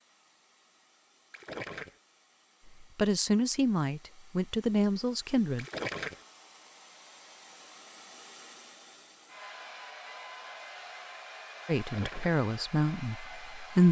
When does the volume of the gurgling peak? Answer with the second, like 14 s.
6 s.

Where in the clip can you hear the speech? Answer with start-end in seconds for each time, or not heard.
2.8-5.7, 11.7-13.8.